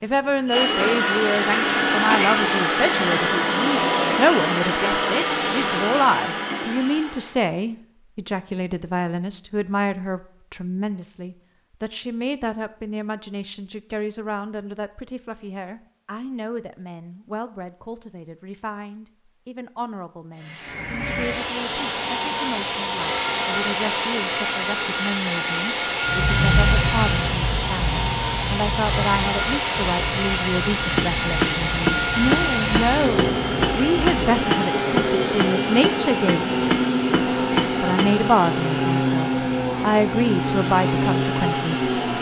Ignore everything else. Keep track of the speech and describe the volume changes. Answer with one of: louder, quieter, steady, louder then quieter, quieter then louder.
quieter then louder.